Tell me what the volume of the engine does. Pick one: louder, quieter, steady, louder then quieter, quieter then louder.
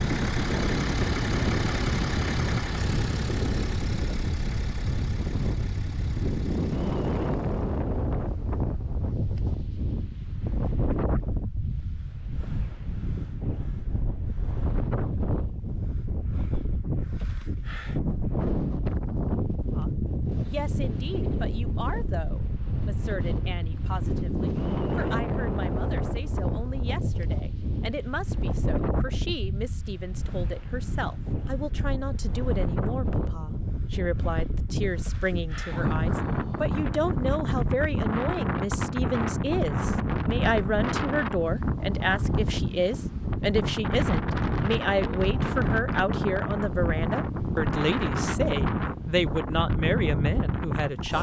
quieter.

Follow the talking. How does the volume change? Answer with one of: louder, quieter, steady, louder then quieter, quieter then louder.
louder.